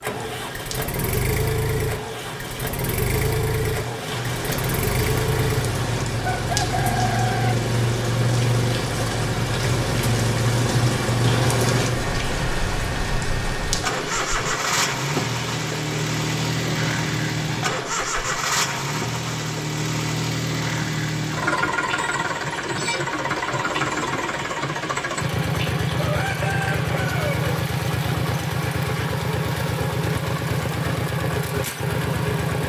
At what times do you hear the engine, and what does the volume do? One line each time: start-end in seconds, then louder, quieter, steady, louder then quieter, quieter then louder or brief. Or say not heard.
0.0-32.6 steady.